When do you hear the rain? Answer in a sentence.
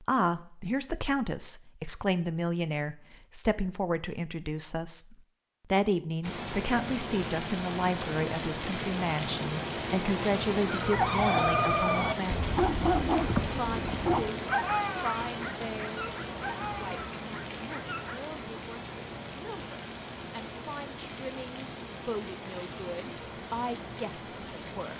The rain can be heard from 6.2 to 24.9 s.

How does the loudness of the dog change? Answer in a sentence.
The loudness of the dog goes down.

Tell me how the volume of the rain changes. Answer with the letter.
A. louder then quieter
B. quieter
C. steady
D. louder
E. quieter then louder
B.